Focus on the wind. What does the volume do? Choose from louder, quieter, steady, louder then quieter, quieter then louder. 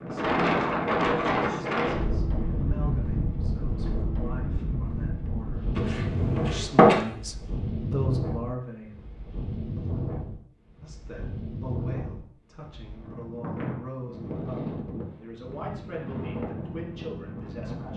quieter.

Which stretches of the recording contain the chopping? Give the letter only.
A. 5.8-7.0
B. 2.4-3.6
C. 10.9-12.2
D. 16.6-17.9
A.